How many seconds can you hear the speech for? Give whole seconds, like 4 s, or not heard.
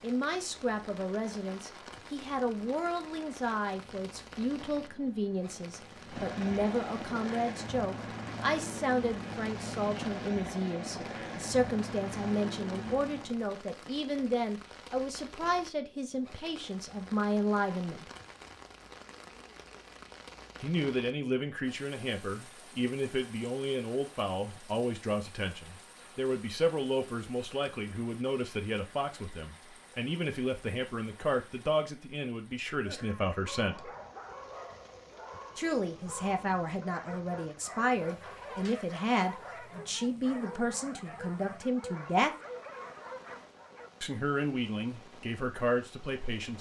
41 s.